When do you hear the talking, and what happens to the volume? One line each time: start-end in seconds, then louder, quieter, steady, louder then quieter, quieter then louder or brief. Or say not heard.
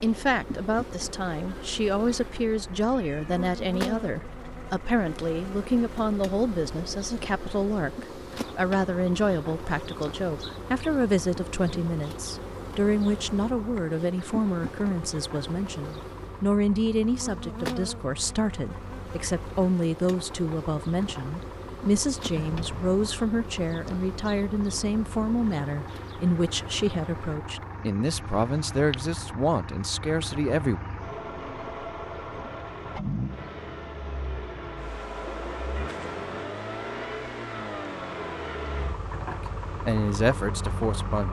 0.0-30.8 steady
39.3-41.2 brief.